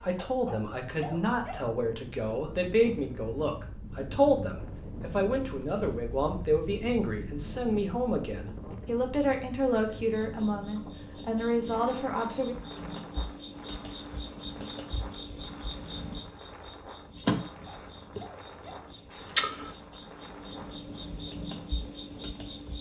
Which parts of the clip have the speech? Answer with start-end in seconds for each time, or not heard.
0.0-12.6.